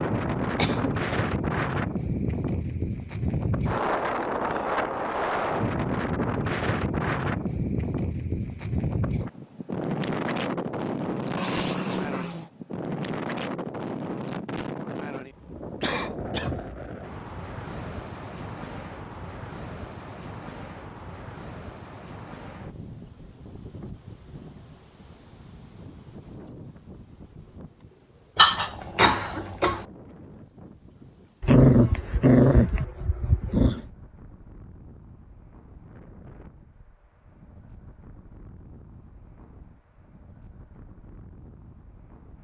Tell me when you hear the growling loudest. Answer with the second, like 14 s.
32 s.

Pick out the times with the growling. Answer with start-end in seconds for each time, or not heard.
11.3-12.5, 31.4-33.8.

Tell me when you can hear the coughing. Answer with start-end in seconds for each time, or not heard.
0.6-1.2, 15.8-16.6, 28.4-29.9.